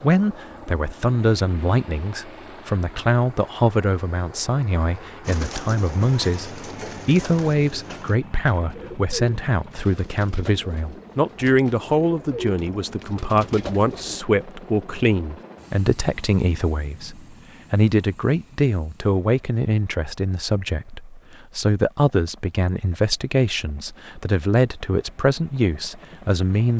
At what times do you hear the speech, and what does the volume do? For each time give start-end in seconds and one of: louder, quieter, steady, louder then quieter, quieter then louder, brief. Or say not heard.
0.0-26.7 steady.